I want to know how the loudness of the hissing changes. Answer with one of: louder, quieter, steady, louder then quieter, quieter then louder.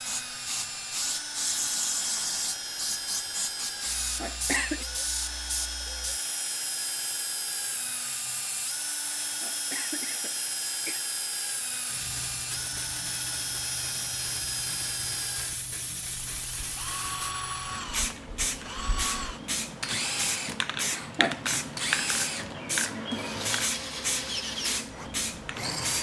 quieter then louder.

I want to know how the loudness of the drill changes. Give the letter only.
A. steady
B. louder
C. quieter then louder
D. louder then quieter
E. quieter
A.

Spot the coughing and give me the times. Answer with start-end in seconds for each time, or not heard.
3.8-4.8, 9.2-11.0, 20.8-21.4.